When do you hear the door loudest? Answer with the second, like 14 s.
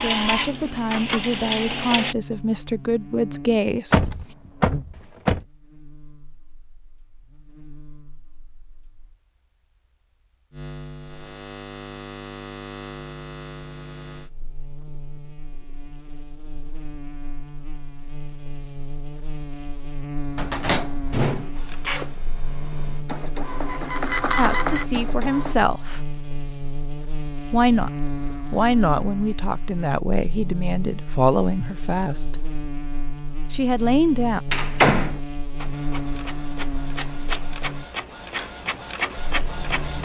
35 s.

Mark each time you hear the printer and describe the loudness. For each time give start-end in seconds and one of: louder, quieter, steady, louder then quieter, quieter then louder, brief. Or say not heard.
0.0-2.1 brief
21.6-25.6 louder
35.5-40.0 louder.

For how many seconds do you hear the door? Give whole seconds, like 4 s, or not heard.
4 s.